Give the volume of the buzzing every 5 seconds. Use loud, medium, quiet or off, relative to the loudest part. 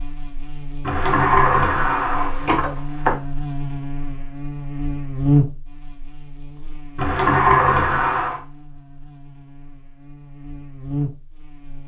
medium, loud, medium.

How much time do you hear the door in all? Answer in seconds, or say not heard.
4 s.